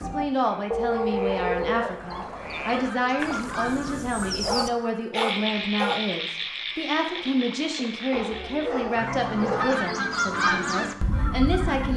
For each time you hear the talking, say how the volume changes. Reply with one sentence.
You can hear the talking from 0.0 to 11.9 s, at a steady volume.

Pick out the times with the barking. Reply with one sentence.
You can hear the barking from 0.7 to 2.4 s, from 4.5 to 6.0 s and from 8.1 to 9.9 s.